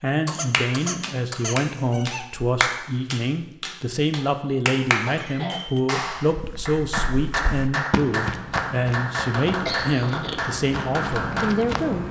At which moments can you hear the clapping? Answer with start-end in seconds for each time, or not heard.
0.5-11.5.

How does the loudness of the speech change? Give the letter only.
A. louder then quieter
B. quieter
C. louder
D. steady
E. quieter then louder
D.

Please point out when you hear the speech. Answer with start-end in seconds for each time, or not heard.
0.0-12.0.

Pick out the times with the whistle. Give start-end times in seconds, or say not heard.
not heard.